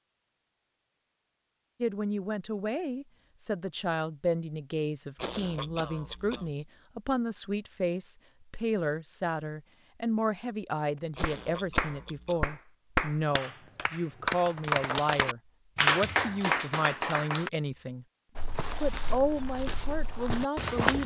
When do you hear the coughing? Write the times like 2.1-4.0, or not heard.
5.2-6.5, 11.2-12.5.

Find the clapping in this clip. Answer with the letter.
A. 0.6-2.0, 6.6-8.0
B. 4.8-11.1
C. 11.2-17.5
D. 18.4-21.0
C.